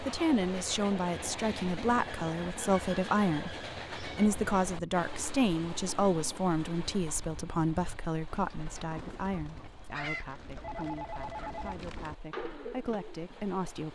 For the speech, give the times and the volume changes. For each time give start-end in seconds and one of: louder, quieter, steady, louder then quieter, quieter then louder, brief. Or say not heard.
0.1-13.9 quieter.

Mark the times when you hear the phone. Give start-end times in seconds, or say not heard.
10.6-11.8.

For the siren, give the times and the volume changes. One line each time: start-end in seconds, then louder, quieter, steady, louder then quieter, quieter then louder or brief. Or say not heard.
not heard.